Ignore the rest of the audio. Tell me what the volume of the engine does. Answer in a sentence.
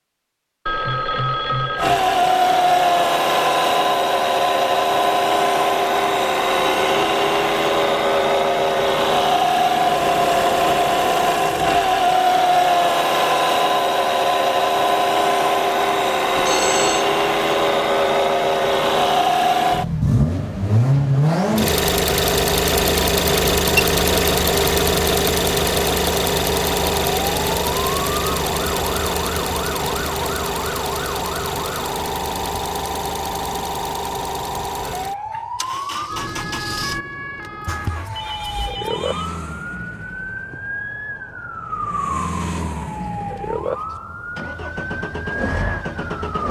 The loudness of the engine goes down.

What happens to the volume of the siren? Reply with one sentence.
The loudness of the siren stays about the same.